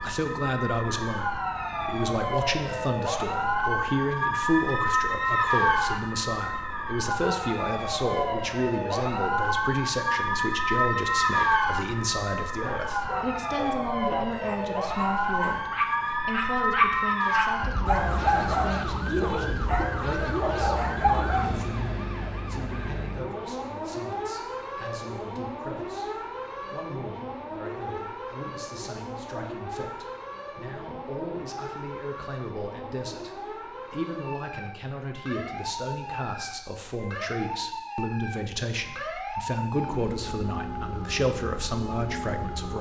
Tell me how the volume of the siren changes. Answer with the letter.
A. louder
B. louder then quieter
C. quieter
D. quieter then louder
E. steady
C.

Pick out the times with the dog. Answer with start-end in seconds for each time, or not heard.
12.6-21.6.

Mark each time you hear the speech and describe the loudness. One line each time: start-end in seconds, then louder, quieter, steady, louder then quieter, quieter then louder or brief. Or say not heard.
0.0-42.7 quieter then louder.